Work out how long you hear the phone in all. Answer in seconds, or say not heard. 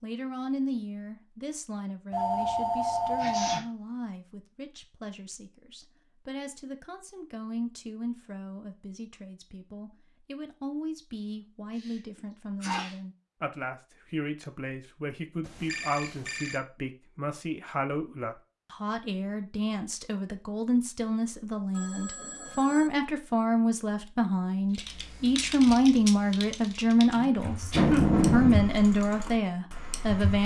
4 s.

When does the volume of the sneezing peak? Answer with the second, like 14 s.
28 s.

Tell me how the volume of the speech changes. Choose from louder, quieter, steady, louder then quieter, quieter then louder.
louder.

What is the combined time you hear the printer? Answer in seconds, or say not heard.
not heard.